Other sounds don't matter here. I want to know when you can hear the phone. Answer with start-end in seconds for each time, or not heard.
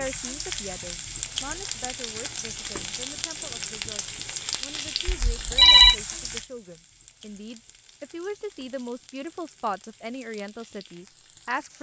5.0-6.0.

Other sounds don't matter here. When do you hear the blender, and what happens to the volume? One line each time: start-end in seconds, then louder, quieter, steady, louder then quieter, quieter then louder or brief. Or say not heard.
not heard.